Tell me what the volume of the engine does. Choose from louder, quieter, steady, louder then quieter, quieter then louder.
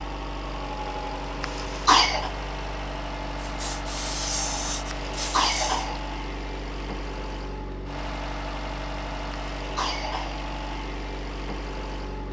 steady.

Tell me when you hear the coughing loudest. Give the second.
2 s.